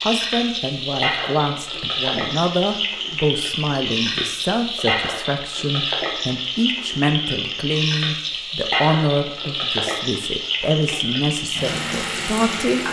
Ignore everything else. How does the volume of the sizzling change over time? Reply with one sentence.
The loudness of the sizzling stays about the same.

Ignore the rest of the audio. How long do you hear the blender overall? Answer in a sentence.
The blender can't be heard in this clip.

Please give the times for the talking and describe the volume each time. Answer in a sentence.
You can hear the talking from 0.0 to 12.8 s, at a steady volume.